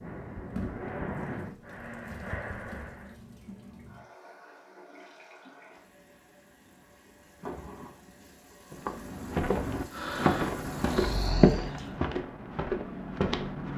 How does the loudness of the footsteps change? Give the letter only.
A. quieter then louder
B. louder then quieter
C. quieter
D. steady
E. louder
B.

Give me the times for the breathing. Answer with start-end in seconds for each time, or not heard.
0.0-3.1, 9.9-11.7.